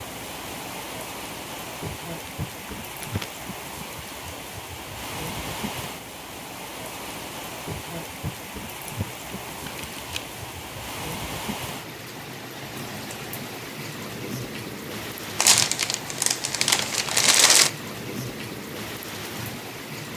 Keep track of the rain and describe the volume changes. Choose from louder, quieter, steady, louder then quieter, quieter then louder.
steady.